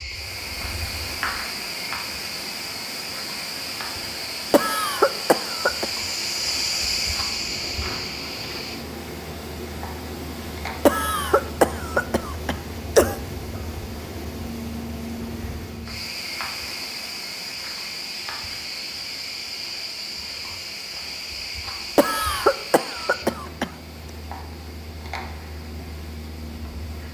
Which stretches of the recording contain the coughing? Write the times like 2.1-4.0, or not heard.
4.5-5.8, 10.8-13.2, 21.9-23.7.